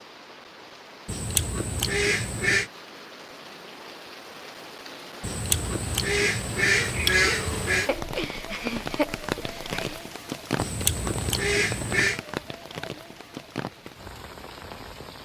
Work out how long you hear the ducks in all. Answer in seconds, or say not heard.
6 s.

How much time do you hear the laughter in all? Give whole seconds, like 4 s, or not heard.
2 s.